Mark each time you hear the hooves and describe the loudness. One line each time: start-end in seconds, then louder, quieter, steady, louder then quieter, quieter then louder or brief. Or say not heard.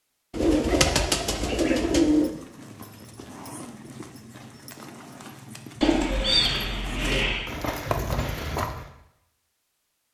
2.1-8.9 louder.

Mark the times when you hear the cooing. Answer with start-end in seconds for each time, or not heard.
0.3-2.3, 5.8-7.5.